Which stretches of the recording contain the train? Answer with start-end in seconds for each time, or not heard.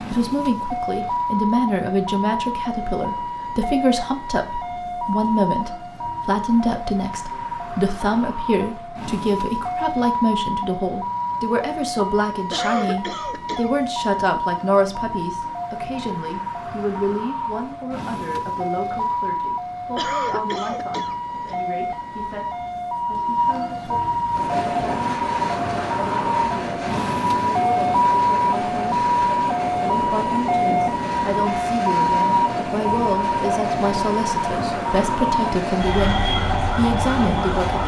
24.3-37.8.